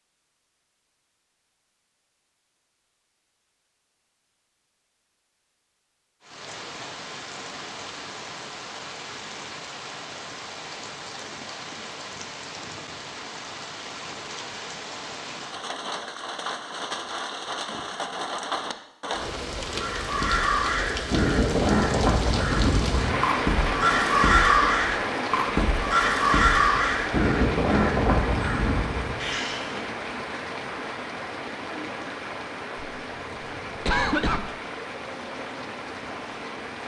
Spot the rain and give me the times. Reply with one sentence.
You can hear the rain from 6.2 to 36.8 s.